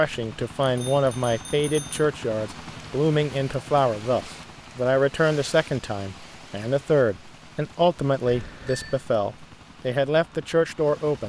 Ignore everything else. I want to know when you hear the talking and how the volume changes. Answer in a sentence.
The talking can be heard from 0.0 to 11.2 s, at a steady volume.